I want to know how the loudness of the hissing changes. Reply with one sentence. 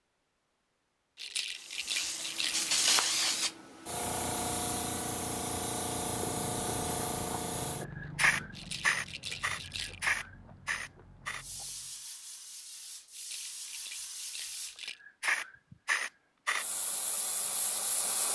The volume of the hissing goes down, then up.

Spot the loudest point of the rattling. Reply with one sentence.
The volume of the rattling peaks at 2 seconds.